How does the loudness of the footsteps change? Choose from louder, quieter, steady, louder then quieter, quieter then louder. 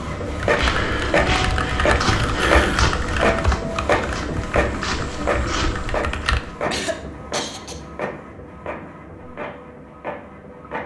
quieter then louder.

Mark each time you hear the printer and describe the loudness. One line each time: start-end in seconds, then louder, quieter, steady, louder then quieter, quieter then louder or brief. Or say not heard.
0.0-10.8 quieter.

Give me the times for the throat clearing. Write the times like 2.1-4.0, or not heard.
2.0-2.9, 6.7-7.8.